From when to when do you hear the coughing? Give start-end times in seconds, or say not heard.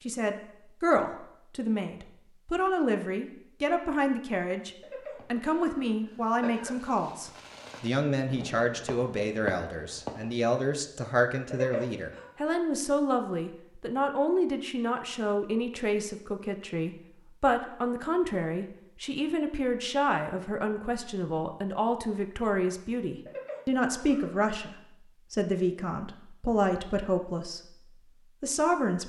4.8-6.8, 11.5-12.3, 23.2-24.6.